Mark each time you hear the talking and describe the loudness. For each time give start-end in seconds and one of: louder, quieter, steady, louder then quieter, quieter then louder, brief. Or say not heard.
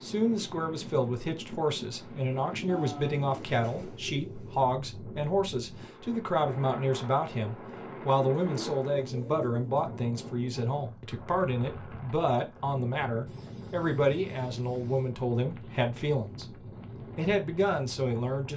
0.0-18.5 steady.